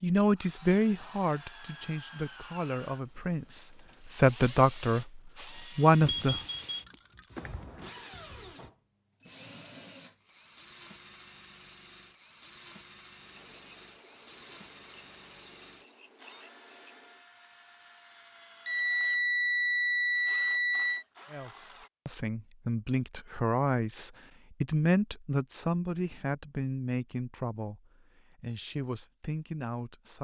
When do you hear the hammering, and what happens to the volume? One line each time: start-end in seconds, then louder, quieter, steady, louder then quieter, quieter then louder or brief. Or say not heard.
not heard.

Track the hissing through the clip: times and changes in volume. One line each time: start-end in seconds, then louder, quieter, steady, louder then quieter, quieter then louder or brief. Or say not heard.
13.2-17.2 steady.